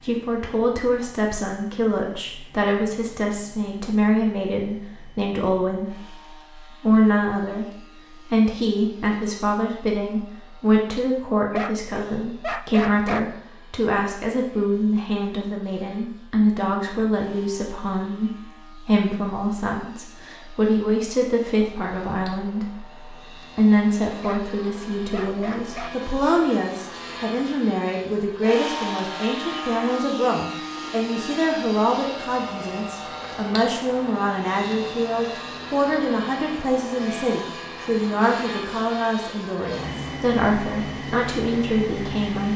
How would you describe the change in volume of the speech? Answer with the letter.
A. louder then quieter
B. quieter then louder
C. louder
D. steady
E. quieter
D.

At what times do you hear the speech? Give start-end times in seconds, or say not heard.
0.0-42.5.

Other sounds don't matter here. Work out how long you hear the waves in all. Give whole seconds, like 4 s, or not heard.
not heard.